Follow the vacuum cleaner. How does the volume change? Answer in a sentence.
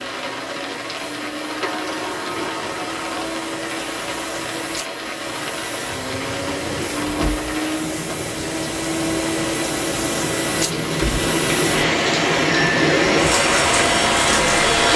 The loudness of the vacuum cleaner goes up.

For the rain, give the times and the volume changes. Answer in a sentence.
The rain can be heard from 0.0 to 14.9 s, getting louder.